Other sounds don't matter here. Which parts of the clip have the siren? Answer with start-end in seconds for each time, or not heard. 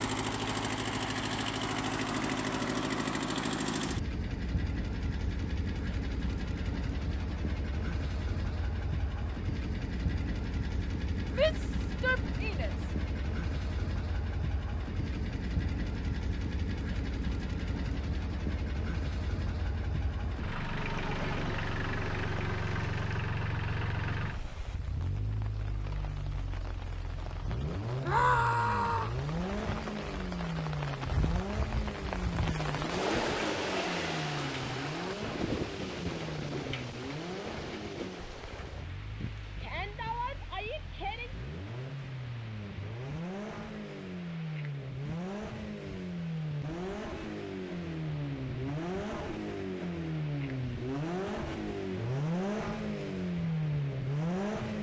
not heard.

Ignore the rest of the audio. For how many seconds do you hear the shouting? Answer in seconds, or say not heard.
4 s.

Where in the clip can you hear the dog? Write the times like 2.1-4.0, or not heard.
not heard.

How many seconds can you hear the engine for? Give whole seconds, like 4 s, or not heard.
55 s.